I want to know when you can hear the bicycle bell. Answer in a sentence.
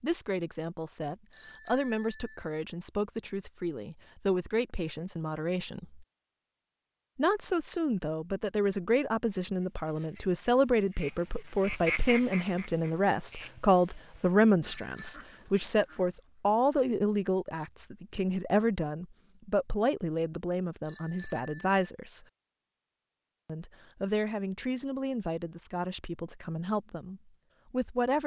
You can hear the bicycle bell from 1.3 to 2.4 s, from 14.6 to 15.2 s and from 20.9 to 21.9 s.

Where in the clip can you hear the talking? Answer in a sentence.
The talking can be heard from 0.0 to 6.0 s, from 7.2 to 22.2 s and from 23.4 to 28.2 s.